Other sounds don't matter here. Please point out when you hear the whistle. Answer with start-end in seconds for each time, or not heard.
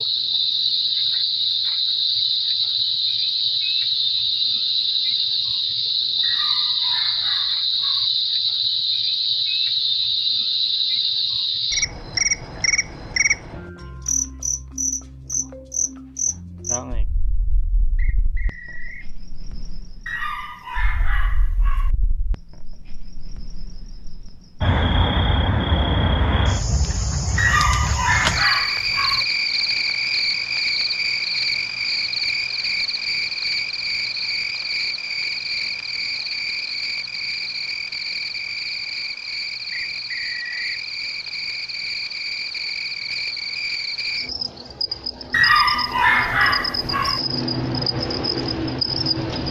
17.9-19.1, 39.7-40.8.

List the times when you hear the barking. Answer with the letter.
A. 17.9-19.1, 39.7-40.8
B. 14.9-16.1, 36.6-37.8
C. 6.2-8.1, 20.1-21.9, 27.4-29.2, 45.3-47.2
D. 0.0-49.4
C.